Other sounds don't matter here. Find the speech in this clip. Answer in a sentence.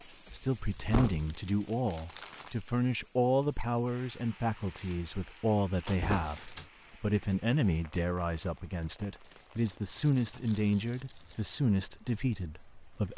You can hear the speech from 0.3 to 13.1 s.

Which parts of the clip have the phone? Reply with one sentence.
You can't hear the phone here.